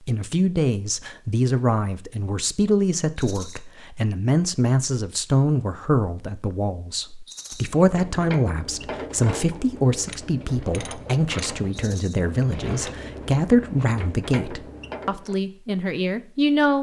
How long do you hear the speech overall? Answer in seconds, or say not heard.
17 s.